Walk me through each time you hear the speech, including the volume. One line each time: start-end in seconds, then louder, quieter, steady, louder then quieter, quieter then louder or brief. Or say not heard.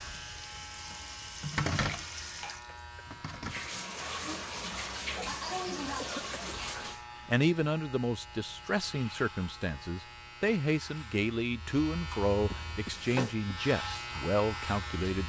7.2-15.2 steady.